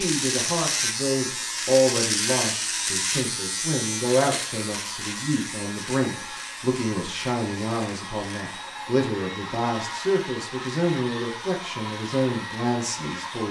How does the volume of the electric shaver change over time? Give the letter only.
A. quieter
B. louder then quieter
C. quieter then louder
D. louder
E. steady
A.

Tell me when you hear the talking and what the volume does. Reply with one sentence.
You can hear the talking from 0.0 to 13.4 s, at a steady volume.